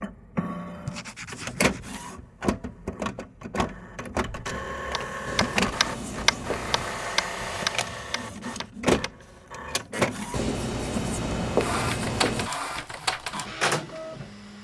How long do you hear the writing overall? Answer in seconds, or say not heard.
5 s.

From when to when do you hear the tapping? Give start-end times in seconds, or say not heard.
4.9-9.1.